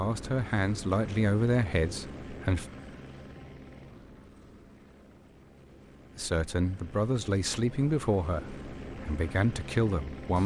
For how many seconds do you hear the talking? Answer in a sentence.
You can hear the talking for 7 seconds altogether.